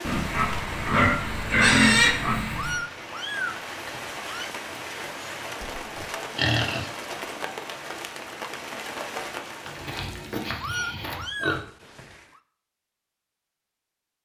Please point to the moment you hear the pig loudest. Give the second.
2 s.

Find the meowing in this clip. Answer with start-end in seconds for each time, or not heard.
2.5-4.5, 10.6-12.4.